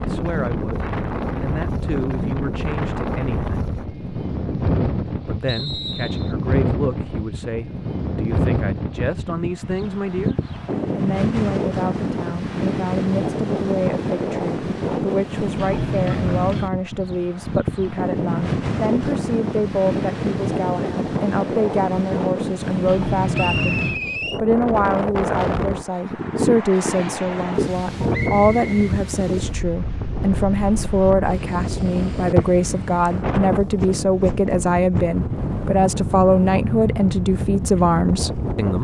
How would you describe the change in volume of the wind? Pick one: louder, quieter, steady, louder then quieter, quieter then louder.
steady.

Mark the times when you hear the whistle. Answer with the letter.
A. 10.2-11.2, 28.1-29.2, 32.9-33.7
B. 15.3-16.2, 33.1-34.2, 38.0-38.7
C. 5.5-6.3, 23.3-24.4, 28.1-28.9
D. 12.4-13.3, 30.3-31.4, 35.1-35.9
C.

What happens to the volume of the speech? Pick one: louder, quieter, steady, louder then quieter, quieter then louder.
louder.